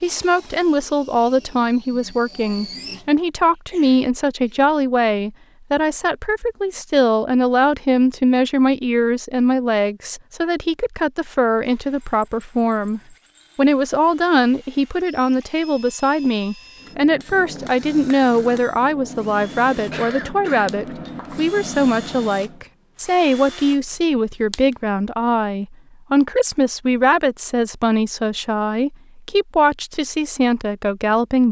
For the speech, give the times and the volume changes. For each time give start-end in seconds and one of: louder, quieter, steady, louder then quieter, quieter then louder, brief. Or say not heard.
0.0-31.4 steady.